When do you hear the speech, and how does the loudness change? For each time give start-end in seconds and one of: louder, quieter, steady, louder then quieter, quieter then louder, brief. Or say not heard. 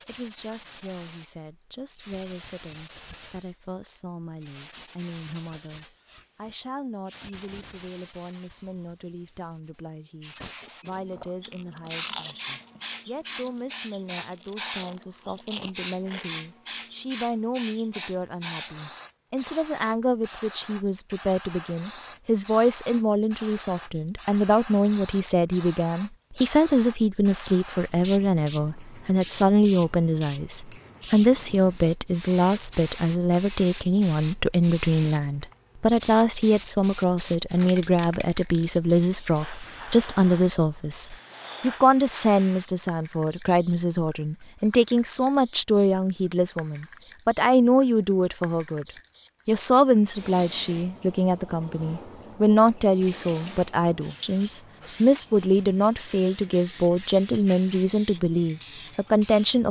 0.1-48.9 louder
49.5-59.6 steady.